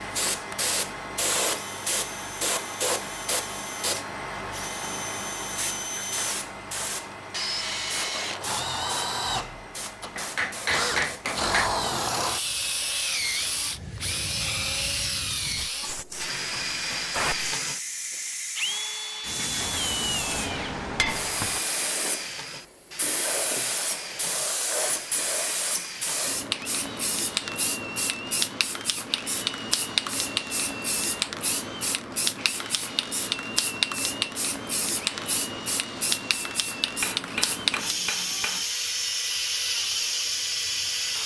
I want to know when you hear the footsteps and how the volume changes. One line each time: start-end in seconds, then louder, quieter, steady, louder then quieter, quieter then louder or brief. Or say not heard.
not heard.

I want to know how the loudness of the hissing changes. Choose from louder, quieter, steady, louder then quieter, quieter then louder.
quieter then louder.